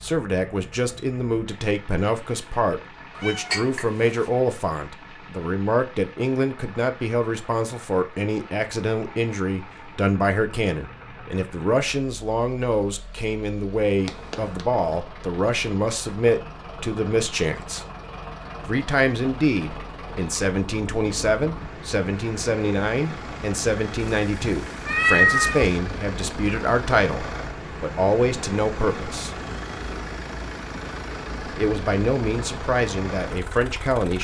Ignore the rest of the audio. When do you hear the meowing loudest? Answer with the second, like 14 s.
25 s.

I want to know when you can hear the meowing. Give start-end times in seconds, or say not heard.
3.1-4.2, 14.1-14.6, 24.0-25.8.